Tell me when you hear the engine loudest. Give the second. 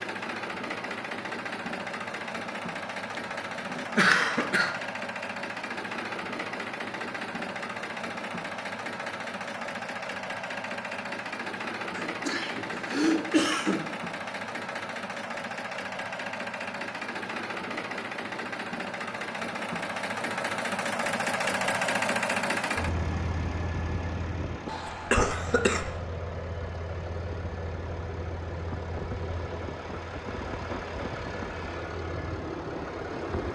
22 s.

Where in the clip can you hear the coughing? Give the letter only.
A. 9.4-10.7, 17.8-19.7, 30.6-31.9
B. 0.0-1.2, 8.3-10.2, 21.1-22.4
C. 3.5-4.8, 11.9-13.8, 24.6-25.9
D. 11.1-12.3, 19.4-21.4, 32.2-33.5
C.